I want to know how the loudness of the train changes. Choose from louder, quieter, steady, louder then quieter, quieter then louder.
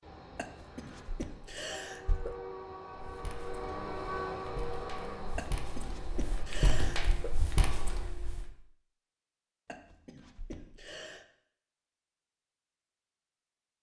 louder then quieter.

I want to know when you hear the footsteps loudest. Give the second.
7 s.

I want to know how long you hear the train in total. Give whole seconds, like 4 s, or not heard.
8 s.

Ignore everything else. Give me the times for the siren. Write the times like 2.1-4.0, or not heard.
not heard.